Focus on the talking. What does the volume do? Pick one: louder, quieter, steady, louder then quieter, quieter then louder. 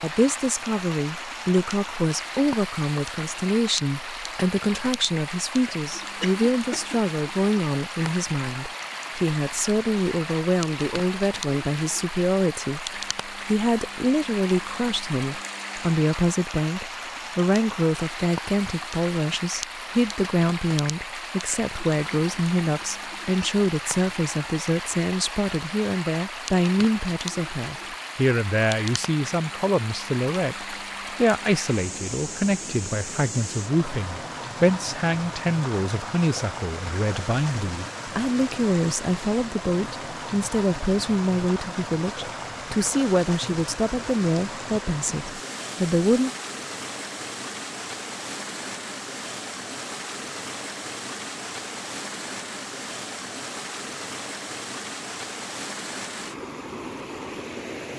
steady.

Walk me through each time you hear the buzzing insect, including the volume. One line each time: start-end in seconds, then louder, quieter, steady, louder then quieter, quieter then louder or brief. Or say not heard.
not heard.